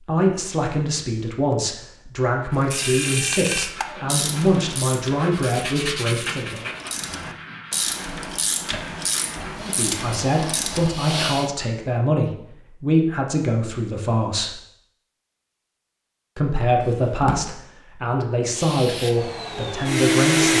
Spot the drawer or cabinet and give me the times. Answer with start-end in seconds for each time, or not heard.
16.8-17.4.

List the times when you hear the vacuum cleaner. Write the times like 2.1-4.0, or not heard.
9.6-11.6, 18.5-20.5.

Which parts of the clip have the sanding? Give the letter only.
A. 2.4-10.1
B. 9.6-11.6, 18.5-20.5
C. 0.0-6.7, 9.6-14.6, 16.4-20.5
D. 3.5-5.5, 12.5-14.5
A.